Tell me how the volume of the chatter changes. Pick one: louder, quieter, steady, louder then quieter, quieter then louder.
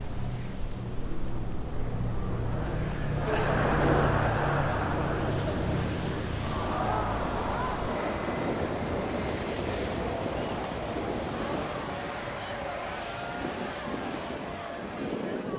quieter.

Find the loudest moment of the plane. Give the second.
4 s.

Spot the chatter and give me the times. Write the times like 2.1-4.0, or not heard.
2.5-15.5.